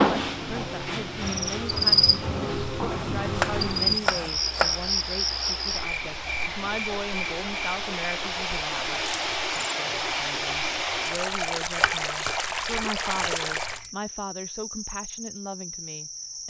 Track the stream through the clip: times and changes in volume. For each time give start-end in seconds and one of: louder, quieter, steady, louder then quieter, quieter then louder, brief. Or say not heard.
0.1-13.8 louder.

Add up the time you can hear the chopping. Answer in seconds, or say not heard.
4 s.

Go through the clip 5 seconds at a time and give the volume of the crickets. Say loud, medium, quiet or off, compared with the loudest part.
loud, medium, quiet, quiet.